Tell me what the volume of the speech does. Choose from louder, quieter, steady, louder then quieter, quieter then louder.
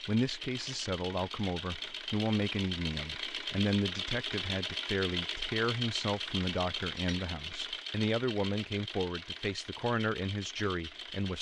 steady.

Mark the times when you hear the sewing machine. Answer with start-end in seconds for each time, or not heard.
0.0-11.3.